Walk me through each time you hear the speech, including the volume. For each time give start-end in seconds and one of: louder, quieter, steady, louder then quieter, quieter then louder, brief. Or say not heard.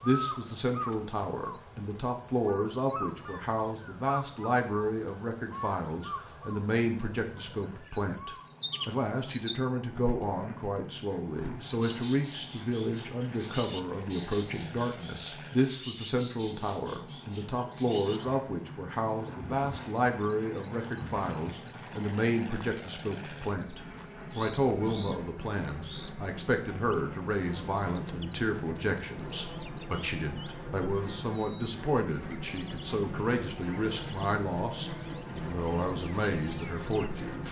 0.0-37.4 steady.